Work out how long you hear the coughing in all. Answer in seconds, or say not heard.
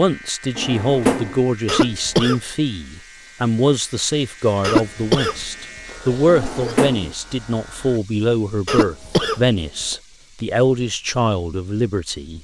4 s.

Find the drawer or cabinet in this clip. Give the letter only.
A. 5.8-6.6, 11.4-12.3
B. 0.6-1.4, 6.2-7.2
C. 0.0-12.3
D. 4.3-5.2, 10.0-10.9
B.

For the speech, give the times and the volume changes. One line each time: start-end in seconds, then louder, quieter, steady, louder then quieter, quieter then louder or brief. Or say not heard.
0.0-12.3 steady.